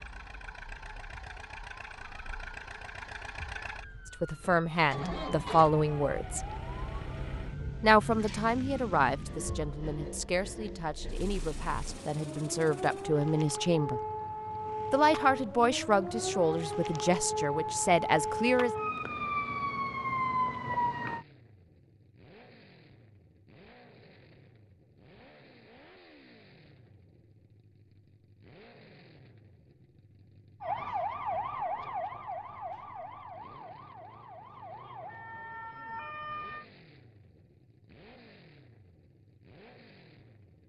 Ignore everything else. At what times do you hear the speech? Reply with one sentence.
The speech can be heard from 4.2 to 6.5 s, from 7.8 to 14.0 s and from 14.9 to 18.7 s.